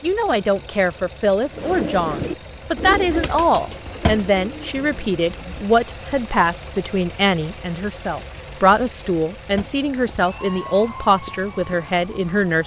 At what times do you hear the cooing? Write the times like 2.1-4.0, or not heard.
1.6-5.7.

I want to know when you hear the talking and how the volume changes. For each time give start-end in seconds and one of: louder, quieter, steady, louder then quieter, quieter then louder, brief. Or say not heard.
0.0-12.6 steady.